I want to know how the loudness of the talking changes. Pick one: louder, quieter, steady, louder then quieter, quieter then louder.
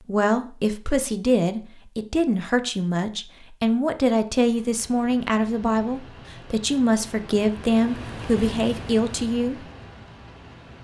steady.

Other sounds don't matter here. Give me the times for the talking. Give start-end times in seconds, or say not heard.
0.1-9.7.